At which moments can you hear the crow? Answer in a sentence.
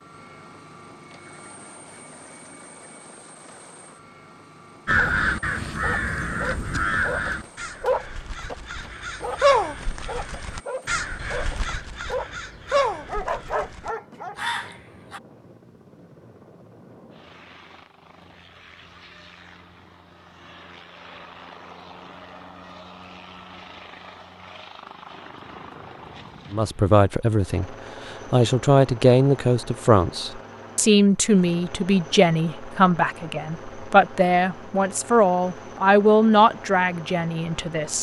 You can hear the crow from 4.8 to 15.2 s.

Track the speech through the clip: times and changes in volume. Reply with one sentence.
You can hear the speech from 26.5 to 37.9 s, at a steady volume.